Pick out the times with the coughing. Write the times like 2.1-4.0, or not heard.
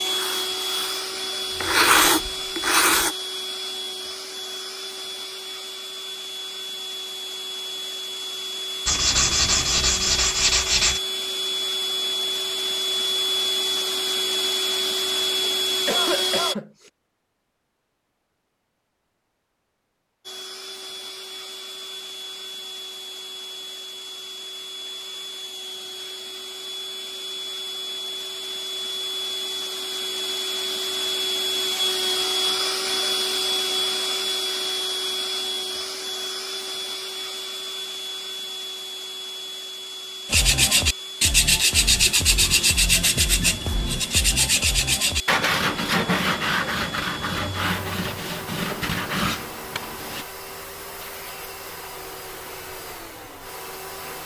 15.4-16.9.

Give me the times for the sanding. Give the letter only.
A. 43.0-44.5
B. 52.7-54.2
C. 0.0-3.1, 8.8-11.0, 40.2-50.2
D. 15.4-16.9
C.